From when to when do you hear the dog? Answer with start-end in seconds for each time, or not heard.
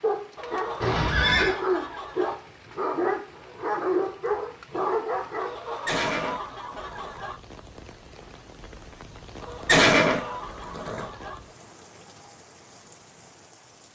0.0-5.6.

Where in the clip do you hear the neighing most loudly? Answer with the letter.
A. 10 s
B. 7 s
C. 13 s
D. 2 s
A.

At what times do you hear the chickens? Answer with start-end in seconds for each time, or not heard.
0.3-2.4, 5.3-7.4, 9.4-11.4.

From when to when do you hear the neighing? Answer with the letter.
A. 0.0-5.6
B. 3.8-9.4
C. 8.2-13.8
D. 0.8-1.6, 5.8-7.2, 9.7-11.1
D.